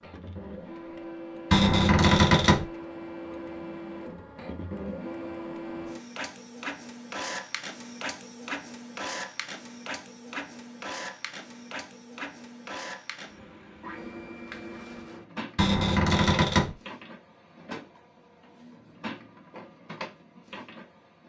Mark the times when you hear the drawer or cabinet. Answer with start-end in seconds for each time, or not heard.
1.5-2.6, 15.6-16.8.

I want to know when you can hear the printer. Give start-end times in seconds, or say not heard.
0.0-21.2.